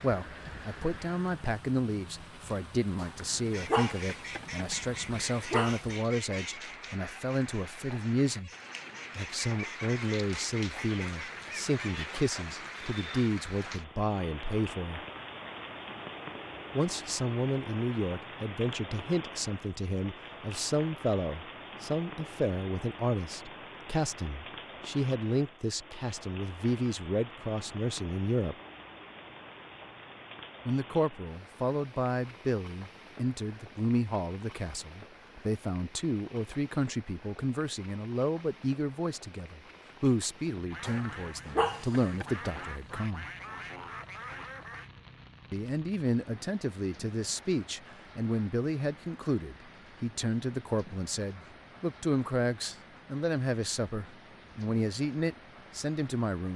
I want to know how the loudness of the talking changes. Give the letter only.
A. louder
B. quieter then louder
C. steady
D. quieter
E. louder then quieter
C.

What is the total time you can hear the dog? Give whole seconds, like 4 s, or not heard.
5 s.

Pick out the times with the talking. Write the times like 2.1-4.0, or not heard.
0.0-8.5, 9.2-15.0, 16.8-28.6, 30.6-43.2, 45.5-56.5.